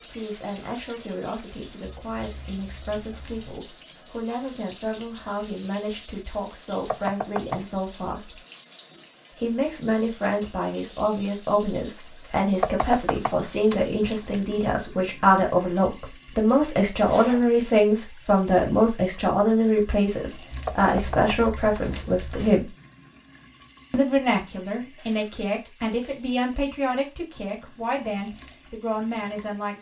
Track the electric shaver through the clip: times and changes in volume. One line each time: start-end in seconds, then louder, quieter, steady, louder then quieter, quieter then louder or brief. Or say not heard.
not heard.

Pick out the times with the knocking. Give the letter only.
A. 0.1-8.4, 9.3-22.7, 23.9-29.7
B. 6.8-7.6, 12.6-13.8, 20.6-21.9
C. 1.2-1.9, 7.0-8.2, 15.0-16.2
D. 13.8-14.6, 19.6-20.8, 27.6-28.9
B.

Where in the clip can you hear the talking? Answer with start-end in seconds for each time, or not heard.
0.1-8.4, 9.3-22.7, 23.9-29.7.